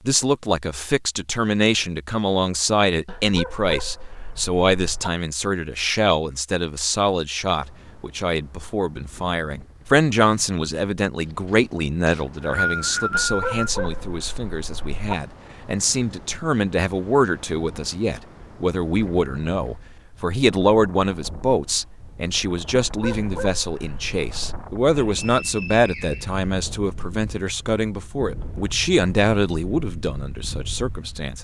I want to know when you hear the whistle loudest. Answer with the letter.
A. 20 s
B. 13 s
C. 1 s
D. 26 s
B.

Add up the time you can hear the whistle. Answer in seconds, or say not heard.
3 s.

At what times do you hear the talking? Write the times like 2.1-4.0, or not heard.
0.1-31.4.